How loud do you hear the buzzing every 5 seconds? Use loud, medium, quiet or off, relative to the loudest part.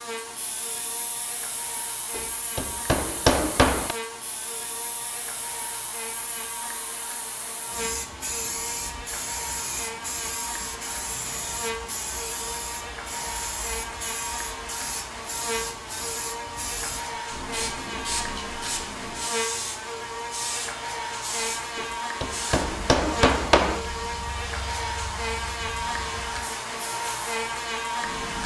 medium, medium, medium, loud, loud, loud.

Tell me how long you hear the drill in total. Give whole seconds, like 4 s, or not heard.
not heard.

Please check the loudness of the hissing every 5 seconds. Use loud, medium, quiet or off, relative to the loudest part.
medium, loud, loud, loud, loud, medium.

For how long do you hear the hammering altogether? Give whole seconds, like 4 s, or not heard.
4 s.